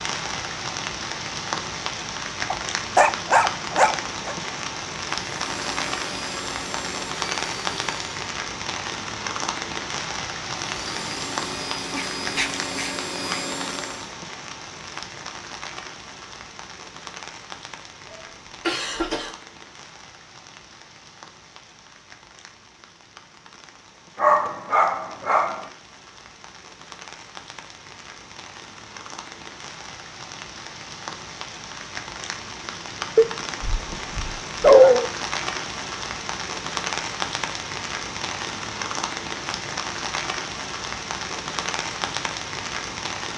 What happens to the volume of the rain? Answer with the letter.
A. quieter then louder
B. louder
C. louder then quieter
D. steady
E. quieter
A.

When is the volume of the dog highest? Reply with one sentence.
The volume of the dog peaks at 35 seconds.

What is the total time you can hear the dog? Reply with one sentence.
You can hear the dog for 7 seconds altogether.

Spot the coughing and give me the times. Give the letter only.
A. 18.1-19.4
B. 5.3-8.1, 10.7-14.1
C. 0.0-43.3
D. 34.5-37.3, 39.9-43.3
A.